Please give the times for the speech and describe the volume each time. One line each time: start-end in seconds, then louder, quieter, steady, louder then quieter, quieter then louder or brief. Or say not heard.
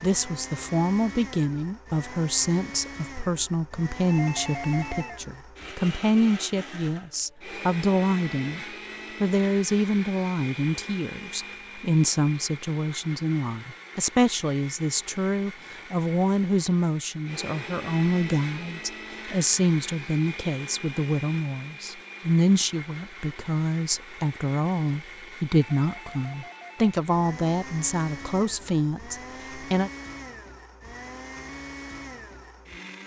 0.0-29.9 steady.